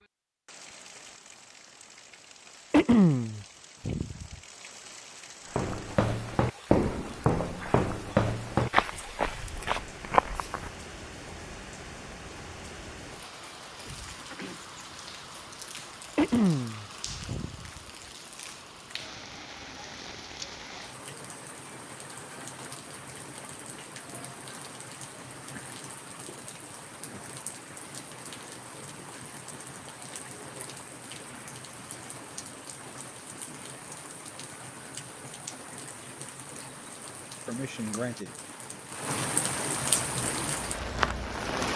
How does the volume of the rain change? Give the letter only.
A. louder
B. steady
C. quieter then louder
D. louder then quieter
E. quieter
A.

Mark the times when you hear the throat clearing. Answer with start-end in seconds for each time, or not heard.
2.7-4.3, 16.1-17.8, 37.5-38.3.